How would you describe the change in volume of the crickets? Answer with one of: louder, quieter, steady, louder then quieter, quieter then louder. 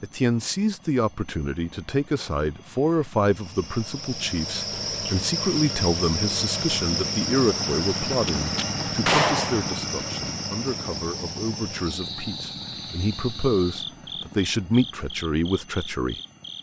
quieter.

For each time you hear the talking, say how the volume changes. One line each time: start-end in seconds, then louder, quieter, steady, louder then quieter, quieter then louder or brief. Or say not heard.
0.0-16.1 quieter then louder.